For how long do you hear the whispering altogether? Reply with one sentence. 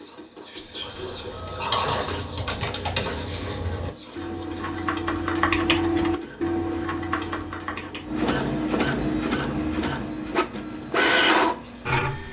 You can hear the whispering for 5 seconds altogether.